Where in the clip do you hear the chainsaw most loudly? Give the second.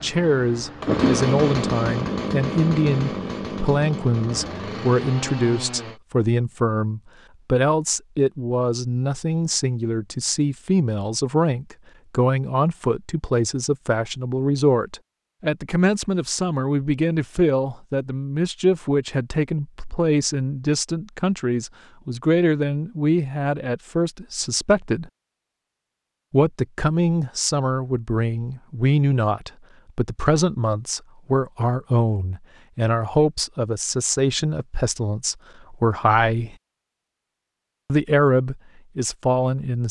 1 s.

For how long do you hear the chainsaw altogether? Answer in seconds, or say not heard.
6 s.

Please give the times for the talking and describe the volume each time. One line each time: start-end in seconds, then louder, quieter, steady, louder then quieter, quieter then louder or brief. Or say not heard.
0.0-25.1 steady
26.3-36.5 steady
37.9-39.8 brief.